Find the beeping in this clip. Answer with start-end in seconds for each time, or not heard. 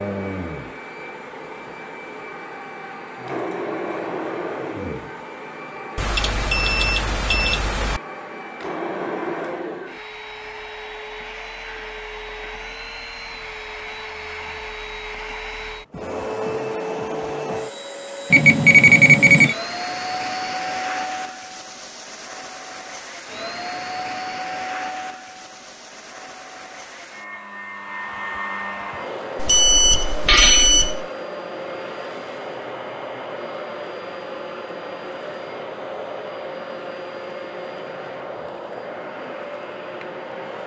6.0-8.0, 18.3-19.6, 29.4-31.1.